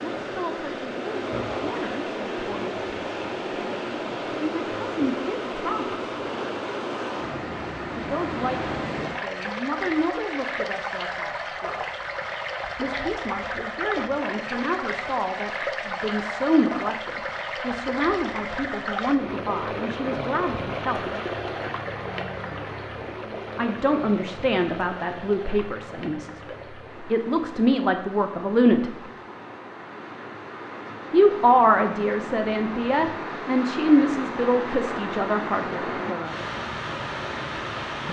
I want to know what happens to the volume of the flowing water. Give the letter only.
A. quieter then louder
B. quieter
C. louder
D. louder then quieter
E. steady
A.